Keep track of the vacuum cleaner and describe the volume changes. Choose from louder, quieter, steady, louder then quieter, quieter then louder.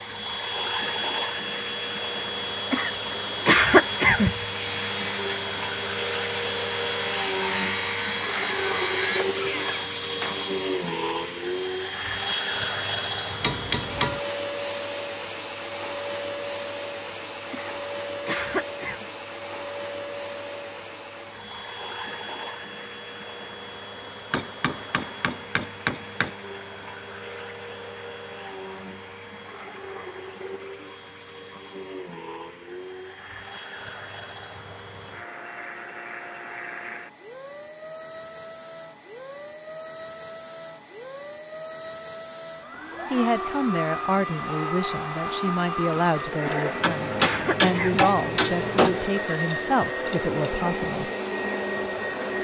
quieter then louder.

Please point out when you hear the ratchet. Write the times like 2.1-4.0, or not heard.
not heard.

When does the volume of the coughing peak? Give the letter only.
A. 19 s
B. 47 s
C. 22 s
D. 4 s
D.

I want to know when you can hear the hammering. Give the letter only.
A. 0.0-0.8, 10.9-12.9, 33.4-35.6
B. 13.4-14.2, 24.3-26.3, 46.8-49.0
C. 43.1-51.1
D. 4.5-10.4
B.